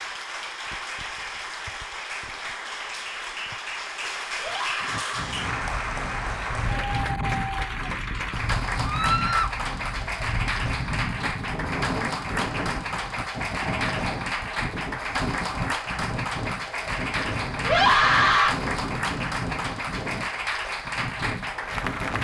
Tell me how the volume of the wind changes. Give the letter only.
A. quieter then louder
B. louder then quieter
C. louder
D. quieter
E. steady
E.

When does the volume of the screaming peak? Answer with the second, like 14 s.
18 s.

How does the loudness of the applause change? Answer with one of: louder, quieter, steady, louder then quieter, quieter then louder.
steady.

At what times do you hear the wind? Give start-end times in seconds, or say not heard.
4.8-22.1.